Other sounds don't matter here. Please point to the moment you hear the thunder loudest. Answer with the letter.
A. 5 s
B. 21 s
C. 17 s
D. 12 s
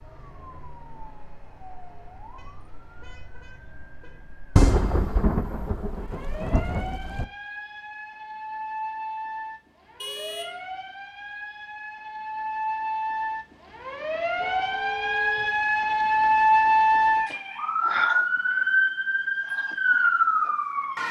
A.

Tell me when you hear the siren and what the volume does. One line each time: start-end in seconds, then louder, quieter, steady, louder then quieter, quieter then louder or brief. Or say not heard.
0.0-21.0 louder.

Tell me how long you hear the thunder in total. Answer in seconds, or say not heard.
3 s.